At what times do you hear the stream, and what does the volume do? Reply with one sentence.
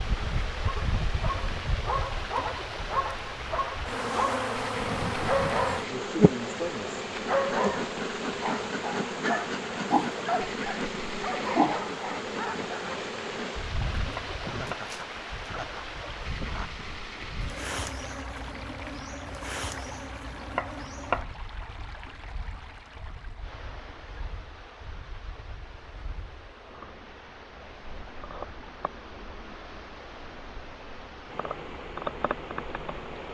You can hear the stream from 0.0 to 33.2 s, getting quieter.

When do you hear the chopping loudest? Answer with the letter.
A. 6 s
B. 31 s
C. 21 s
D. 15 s
C.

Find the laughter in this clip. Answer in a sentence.
You can hear the laughter from 14.4 to 16.8 s.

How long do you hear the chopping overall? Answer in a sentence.
You can hear the chopping for 2 seconds altogether.